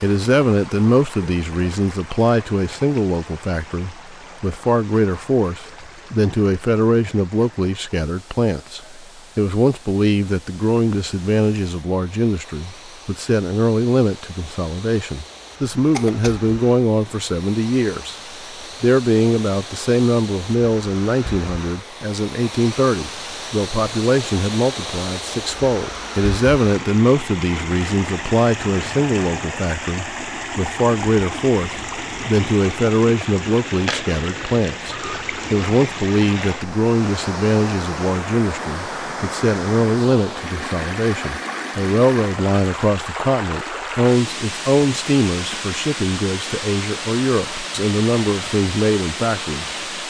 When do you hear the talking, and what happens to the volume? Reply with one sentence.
You can hear the talking from 0.0 to 18.1 s, at a steady volume; and from 18.8 to 49.8 s, at a steady volume.